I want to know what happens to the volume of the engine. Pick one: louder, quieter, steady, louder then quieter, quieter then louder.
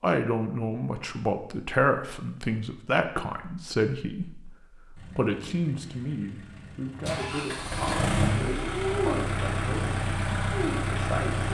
louder.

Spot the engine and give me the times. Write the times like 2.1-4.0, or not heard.
5.0-11.4.